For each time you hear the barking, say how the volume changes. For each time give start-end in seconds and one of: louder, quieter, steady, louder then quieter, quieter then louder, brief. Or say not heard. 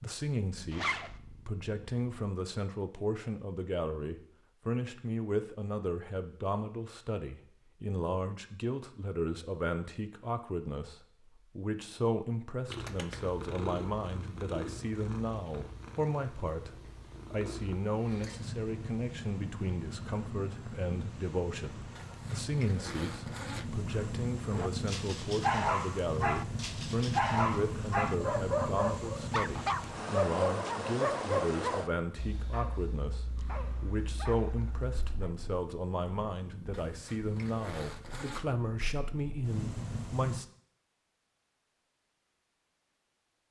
24.5-35.3 quieter.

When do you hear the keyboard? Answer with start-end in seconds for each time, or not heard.
not heard.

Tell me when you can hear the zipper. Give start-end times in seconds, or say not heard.
0.7-1.1, 21.9-23.8, 36.7-38.5.